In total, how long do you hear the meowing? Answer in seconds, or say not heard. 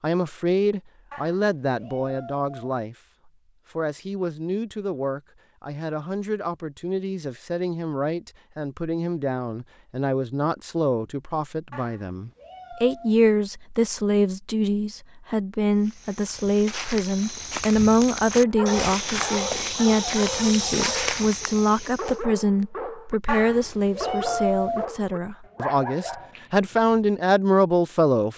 5 s.